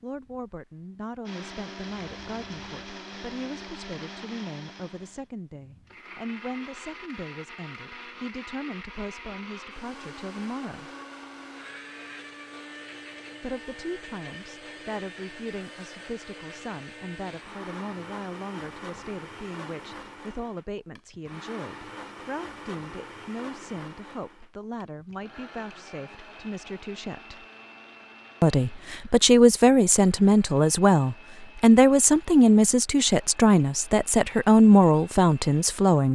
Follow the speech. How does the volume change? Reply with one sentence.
The loudness of the speech goes up.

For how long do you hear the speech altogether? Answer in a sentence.
The speech can be heard for 33 seconds in total.